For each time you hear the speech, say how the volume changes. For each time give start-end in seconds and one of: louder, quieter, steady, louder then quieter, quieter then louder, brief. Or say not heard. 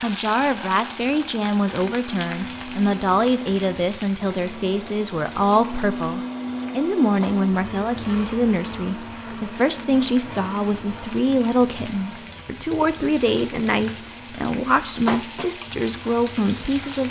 0.0-17.0 steady.